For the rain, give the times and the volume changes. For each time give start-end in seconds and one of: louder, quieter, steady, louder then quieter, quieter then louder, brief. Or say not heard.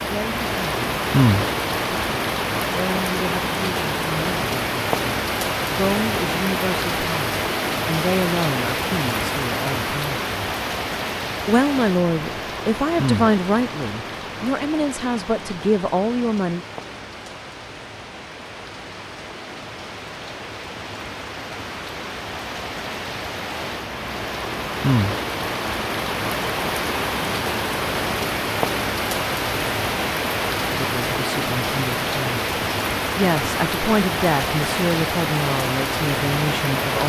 0.0-37.0 quieter then louder.